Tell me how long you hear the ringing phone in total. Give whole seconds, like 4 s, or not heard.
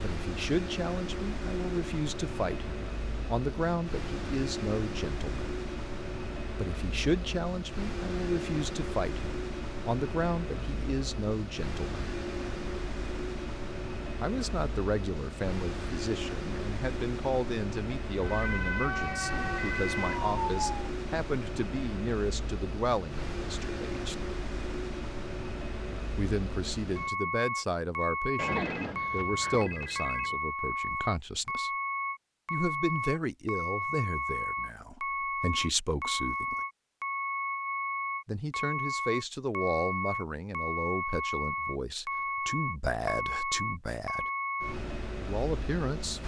2 s.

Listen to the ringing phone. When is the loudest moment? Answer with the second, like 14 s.
29 s.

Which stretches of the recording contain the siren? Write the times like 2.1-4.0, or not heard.
18.1-20.9.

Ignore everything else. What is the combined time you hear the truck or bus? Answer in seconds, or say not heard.
46 s.